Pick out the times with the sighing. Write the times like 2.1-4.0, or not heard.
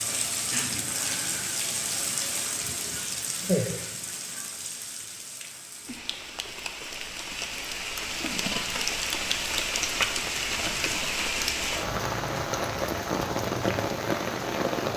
2.9-4.4.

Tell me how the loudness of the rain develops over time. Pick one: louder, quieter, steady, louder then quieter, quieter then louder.
quieter then louder.